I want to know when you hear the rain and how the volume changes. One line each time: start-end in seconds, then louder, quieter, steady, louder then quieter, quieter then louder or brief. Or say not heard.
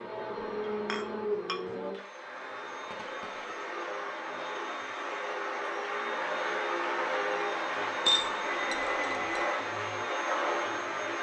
not heard.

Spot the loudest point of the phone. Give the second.
9 s.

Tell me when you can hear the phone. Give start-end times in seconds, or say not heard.
2.9-3.7, 8.4-9.7.